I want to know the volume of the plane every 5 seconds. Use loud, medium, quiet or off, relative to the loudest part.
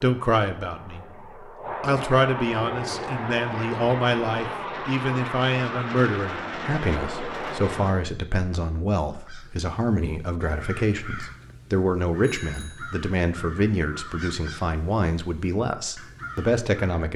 loud, loud, off, off.